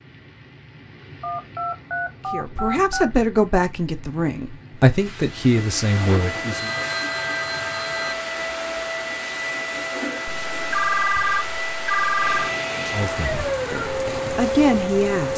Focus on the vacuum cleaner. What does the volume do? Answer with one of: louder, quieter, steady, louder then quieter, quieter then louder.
steady.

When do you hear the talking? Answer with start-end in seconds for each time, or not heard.
2.3-6.7, 12.8-15.3.